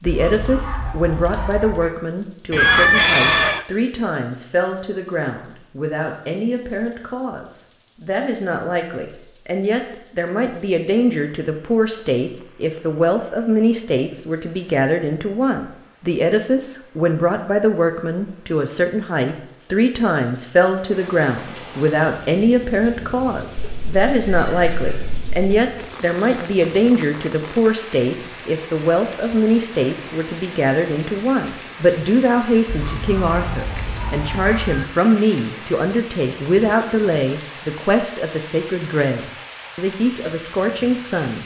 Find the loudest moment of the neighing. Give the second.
3 s.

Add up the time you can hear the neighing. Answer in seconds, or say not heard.
5 s.